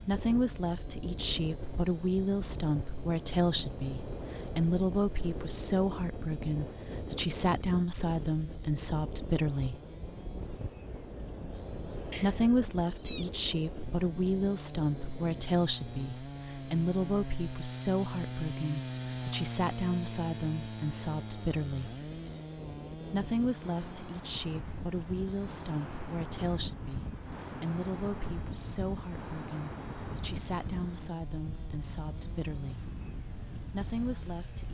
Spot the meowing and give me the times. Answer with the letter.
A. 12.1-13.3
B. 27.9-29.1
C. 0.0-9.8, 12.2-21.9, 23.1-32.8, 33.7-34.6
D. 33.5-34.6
A.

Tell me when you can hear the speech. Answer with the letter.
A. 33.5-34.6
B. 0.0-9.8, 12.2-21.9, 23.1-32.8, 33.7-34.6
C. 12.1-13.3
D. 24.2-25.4
B.